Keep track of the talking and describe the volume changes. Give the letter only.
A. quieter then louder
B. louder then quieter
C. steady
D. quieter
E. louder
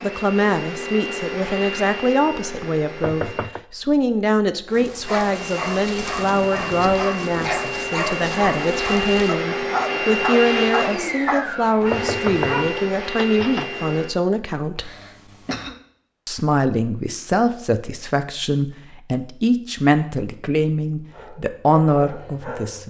C.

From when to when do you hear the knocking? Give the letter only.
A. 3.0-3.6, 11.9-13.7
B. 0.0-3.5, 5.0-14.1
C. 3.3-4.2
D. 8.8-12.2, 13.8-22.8
A.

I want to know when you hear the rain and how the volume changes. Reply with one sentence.
You can't hear the rain here.